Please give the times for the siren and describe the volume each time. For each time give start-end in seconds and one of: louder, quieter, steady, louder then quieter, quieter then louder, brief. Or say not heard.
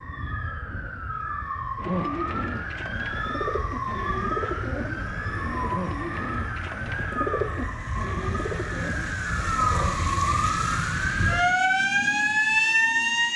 0.0-13.3 louder.